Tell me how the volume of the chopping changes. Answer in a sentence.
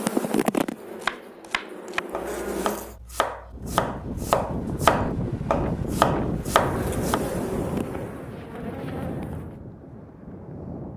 The volume of the chopping goes up.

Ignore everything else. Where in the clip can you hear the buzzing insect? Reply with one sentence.
You can hear the buzzing insect from 0.0 to 3.0 s and from 6.3 to 9.6 s.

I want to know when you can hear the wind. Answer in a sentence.
The wind can be heard from 3.5 to 10.9 s.